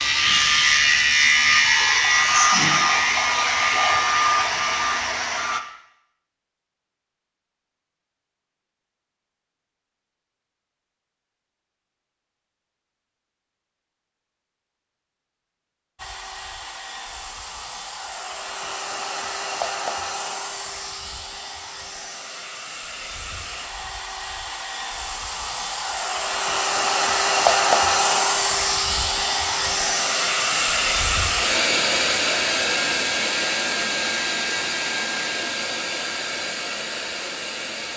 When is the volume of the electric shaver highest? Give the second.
1 s.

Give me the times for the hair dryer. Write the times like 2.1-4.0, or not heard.
0.0-5.6, 15.9-37.9.